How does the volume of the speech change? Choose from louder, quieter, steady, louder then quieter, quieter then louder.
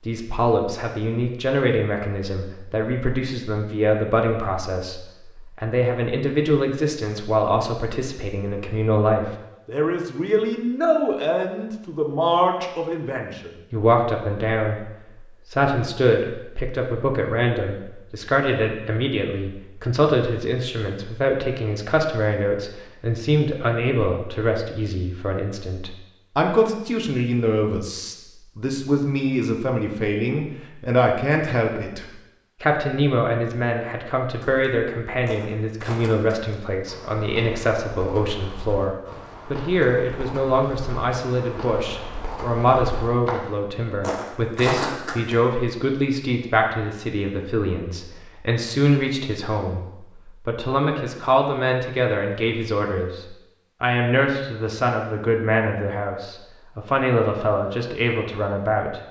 steady.